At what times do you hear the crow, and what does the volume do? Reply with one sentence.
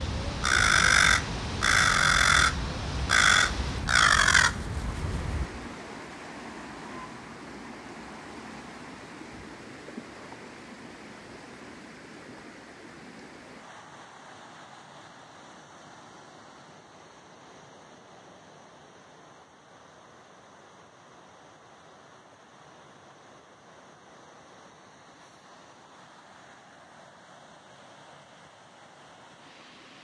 You can hear the crow from 0.0 to 5.5 s, at a steady volume.